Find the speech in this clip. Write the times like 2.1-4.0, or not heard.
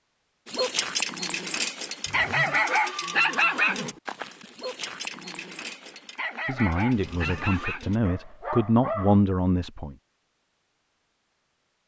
6.5-9.9.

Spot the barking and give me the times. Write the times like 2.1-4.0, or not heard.
0.5-9.2.